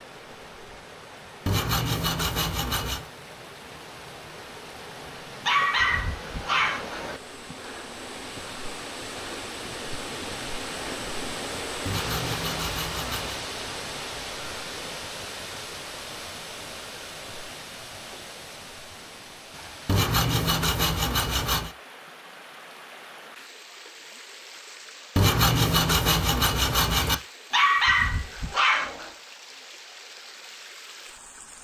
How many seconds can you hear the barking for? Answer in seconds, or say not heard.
3 s.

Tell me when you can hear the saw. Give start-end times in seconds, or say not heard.
1.4-3.0, 11.8-13.4, 19.9-21.7, 25.1-27.1.